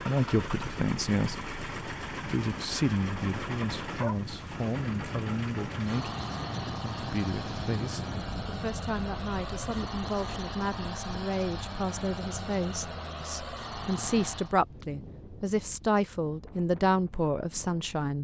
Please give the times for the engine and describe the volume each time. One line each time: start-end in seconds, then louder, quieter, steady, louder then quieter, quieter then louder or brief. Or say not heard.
0.0-14.6 steady.